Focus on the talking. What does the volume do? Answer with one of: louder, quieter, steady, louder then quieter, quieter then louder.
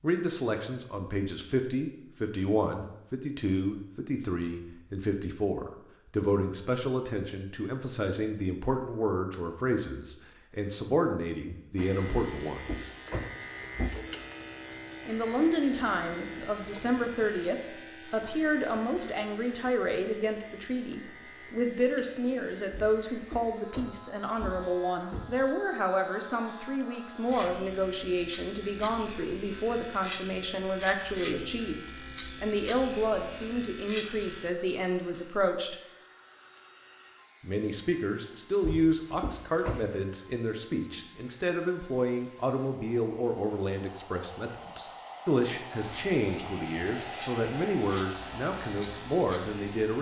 steady.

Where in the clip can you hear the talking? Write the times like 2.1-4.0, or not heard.
0.0-12.9, 15.1-35.8, 37.4-49.9.